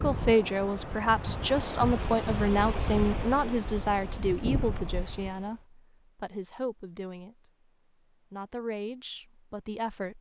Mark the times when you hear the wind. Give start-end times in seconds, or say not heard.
0.0-5.6.